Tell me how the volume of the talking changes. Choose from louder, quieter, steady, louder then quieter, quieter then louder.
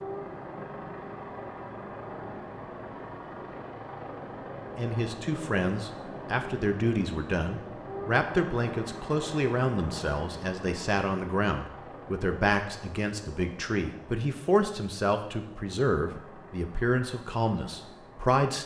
steady.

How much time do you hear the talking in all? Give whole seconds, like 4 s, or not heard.
14 s.